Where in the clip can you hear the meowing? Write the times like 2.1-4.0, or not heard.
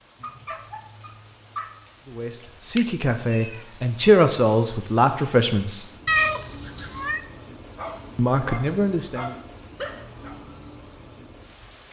2.8-3.5, 6.0-7.2.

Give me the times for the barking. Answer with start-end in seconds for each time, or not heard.
0.2-1.9, 7.8-10.4.